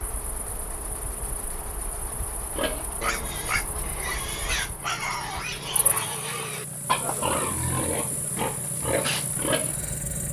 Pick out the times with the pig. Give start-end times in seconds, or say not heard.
2.5-9.8.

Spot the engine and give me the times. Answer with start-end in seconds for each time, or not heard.
0.0-10.2.